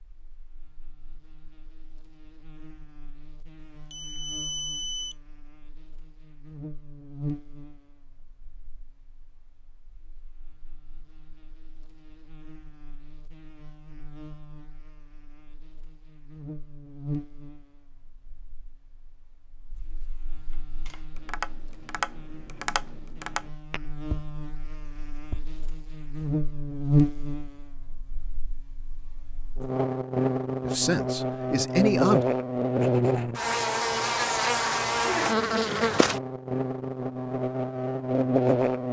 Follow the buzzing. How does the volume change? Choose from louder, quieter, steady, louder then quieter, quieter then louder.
quieter then louder.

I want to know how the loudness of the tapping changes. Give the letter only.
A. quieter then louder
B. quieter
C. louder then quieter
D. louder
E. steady
B.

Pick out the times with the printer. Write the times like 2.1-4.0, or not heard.
not heard.